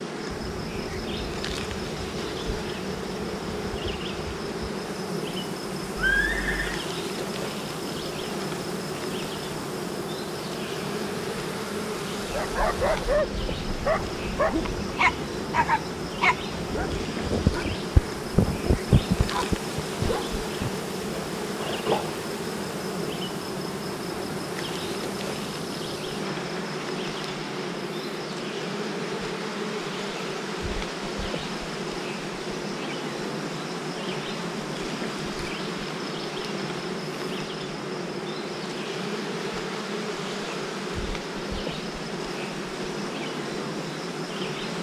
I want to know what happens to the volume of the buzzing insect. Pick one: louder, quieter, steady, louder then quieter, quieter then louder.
steady.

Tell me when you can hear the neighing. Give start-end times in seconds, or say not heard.
6.0-6.8.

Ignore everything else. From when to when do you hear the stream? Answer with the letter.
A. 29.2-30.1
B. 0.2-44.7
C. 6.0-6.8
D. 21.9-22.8
B.